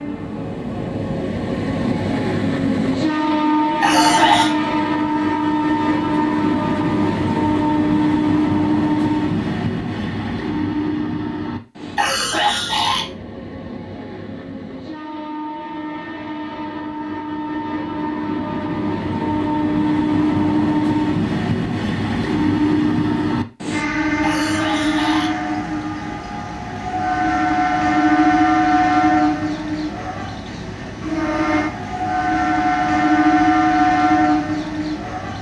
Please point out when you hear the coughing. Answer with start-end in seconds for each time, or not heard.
3.8-4.5, 11.9-13.1, 24.2-25.4.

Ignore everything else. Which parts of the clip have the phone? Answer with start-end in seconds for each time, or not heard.
4.0-4.5.